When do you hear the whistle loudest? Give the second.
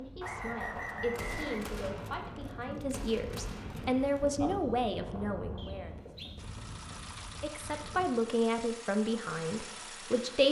1 s.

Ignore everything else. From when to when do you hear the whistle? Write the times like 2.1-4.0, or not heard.
0.2-1.7, 5.5-6.3.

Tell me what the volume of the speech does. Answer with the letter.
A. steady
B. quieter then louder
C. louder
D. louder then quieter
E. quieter
C.